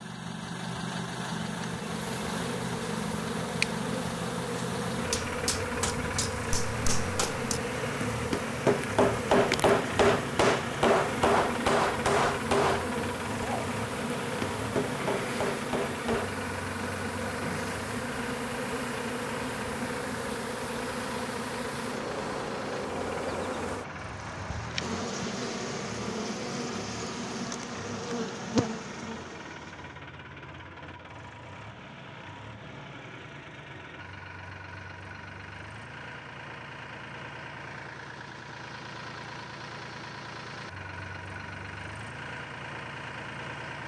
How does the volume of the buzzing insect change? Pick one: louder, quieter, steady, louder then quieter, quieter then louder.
steady.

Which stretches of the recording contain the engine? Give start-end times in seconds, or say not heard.
0.0-43.8.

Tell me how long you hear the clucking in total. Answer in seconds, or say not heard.
not heard.